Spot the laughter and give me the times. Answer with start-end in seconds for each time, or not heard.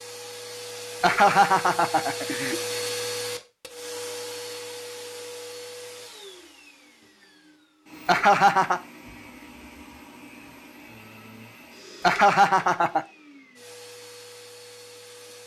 1.0-2.6, 8.1-8.8, 12.0-13.0.